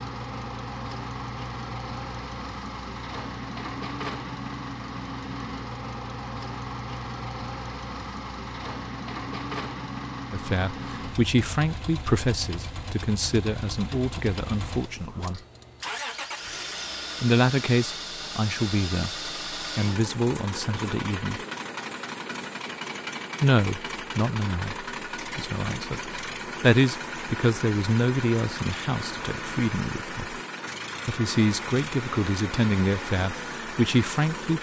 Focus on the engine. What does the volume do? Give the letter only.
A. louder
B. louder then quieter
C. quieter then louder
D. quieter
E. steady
E.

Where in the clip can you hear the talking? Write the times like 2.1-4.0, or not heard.
10.3-15.4, 17.2-21.4, 23.4-30.2, 31.1-34.5.